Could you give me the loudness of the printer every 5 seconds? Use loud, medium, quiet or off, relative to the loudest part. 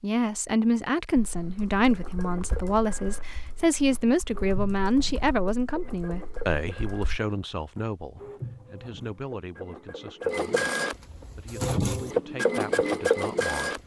quiet, quiet, loud.